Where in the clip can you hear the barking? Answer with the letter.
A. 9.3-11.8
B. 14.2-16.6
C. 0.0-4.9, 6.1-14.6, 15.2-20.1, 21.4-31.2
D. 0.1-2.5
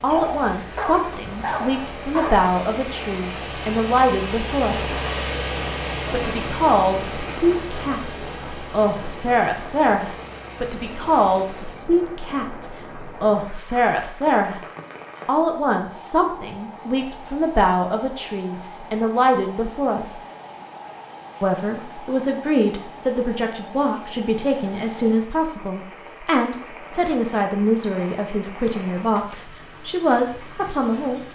D.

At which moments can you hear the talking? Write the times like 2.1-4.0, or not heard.
0.0-4.9, 6.1-14.6, 15.2-20.1, 21.4-31.2.